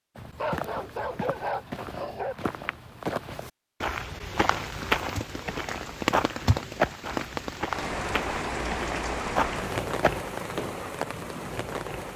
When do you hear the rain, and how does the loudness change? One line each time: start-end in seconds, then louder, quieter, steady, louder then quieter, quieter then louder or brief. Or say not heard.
4.3-12.1 steady.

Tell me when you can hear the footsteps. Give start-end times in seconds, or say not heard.
0.1-10.8.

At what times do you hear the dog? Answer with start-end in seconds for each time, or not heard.
0.3-2.4.